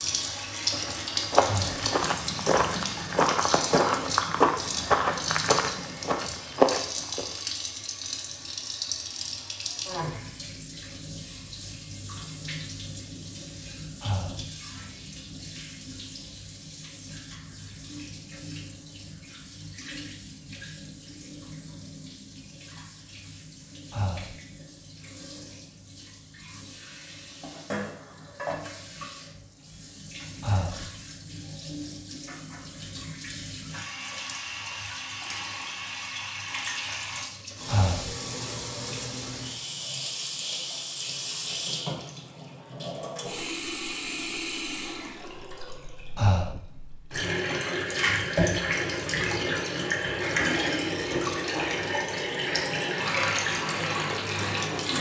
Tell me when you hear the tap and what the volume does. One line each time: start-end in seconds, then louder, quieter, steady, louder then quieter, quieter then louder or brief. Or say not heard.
0.0-54.9 quieter then louder.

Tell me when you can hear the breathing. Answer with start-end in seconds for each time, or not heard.
1.4-1.9, 14.0-14.4, 23.9-24.4, 30.4-30.9, 37.6-38.1, 46.1-46.6.